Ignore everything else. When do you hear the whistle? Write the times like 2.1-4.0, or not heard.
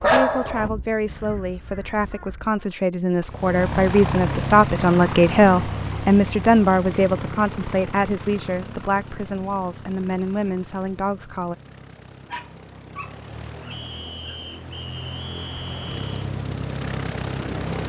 13.7-16.2.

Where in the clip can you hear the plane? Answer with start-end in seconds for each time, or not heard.
3.2-17.8.